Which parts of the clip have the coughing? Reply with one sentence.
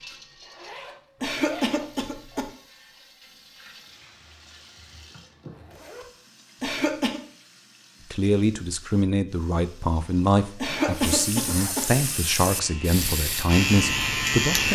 You can hear the coughing from 1.2 to 2.5 s, from 6.6 to 7.2 s and from 10.6 to 11.9 s.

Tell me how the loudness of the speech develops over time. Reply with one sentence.
The volume of the speech stays about the same.